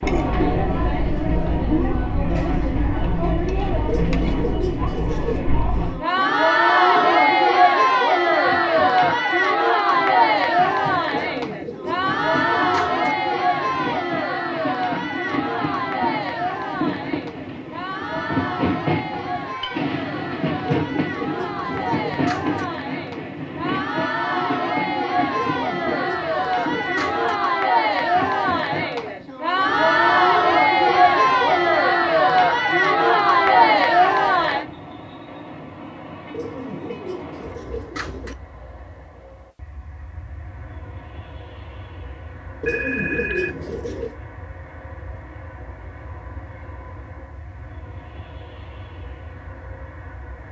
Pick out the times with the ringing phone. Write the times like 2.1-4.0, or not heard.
42.6-43.5.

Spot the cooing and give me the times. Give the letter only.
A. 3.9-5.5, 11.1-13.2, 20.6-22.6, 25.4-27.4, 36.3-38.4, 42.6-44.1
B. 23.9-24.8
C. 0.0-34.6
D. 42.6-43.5
A.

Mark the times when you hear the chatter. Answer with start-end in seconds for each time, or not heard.
0.0-34.6.